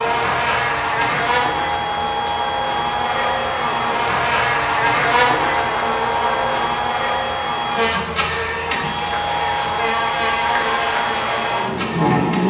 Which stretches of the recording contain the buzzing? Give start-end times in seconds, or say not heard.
0.0-12.4.